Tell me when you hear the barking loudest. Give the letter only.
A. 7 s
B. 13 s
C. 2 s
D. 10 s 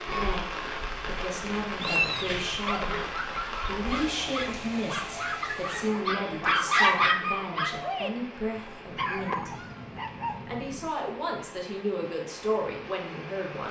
A.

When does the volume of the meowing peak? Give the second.
2 s.